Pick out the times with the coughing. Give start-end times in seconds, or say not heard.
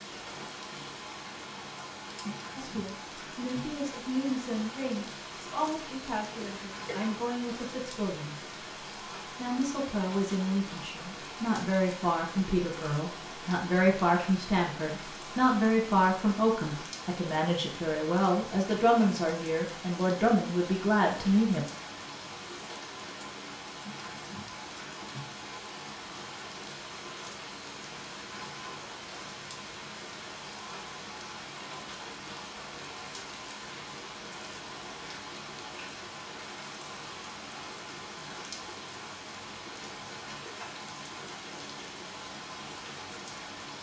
6.3-7.0.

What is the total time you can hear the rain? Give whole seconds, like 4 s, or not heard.
44 s.